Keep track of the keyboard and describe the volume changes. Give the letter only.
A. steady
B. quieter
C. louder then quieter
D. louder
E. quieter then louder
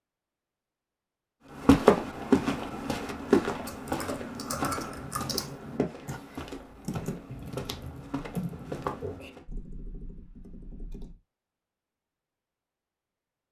B.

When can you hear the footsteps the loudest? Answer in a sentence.
The volume of the footsteps peaks at 2 seconds.